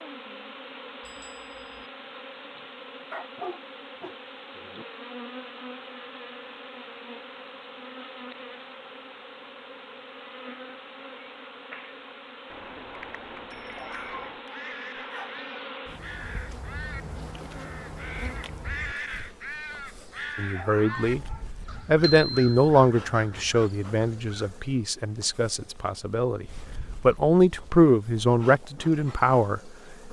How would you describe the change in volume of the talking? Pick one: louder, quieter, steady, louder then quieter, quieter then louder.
quieter then louder.